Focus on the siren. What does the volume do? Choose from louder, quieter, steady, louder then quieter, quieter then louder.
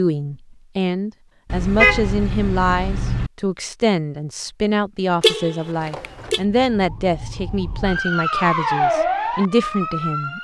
louder then quieter.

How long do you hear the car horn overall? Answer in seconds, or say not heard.
3 s.